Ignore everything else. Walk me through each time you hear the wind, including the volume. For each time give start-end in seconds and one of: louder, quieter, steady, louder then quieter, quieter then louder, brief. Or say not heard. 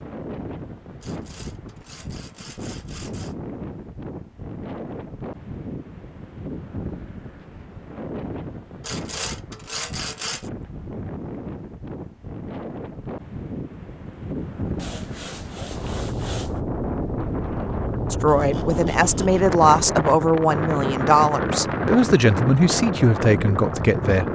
0.0-24.2 louder.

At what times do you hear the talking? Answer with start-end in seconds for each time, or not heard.
18.1-24.2.